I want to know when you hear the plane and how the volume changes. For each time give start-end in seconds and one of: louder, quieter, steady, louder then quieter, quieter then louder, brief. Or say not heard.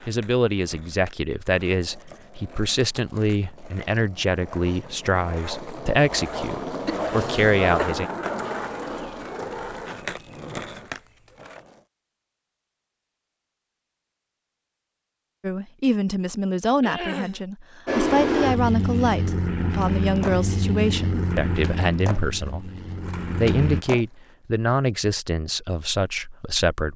17.9-23.9 quieter.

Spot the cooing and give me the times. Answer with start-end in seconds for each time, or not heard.
not heard.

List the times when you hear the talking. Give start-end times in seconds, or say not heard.
0.1-8.1, 15.4-26.9.